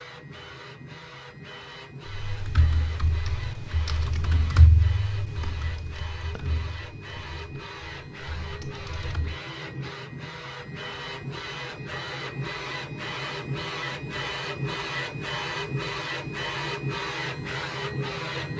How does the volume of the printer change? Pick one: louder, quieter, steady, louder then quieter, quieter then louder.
louder.